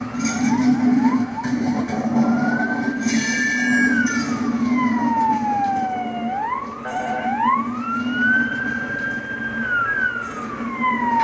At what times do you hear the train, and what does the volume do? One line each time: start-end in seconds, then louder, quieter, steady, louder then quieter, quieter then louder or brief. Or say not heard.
0.0-11.2 quieter.